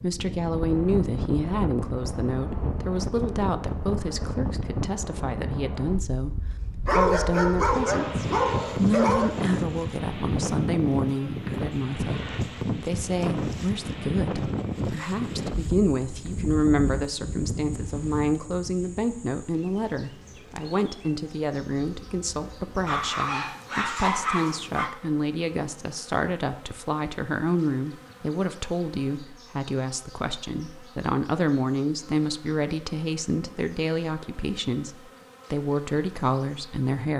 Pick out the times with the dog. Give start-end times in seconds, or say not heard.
6.8-9.3, 22.9-24.9.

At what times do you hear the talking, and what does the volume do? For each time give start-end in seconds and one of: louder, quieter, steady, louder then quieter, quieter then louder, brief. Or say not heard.
0.0-37.1 steady.